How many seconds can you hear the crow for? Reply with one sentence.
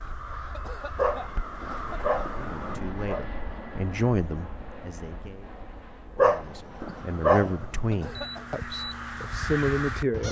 The crow can be heard for 6 seconds in total.